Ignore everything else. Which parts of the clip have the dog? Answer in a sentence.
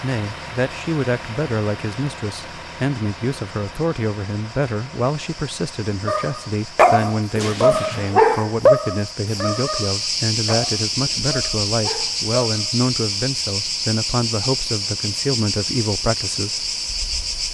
The dog can be heard from 6.0 to 12.8 s.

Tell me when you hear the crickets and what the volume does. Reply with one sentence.
You can hear the crickets from 0.0 to 17.4 s, getting louder.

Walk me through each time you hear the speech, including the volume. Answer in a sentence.
You can hear the speech from 0.0 to 16.6 s, at a steady volume.